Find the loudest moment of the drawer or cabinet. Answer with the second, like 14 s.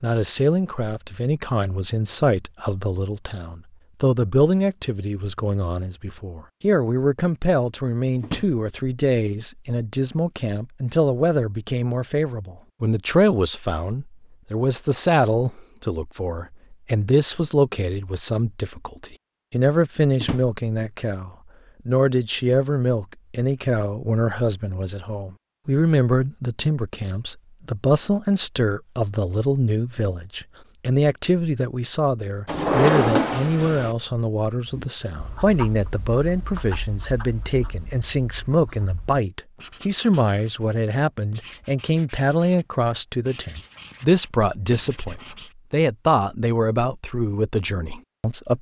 33 s.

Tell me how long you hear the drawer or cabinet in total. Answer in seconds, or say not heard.
2 s.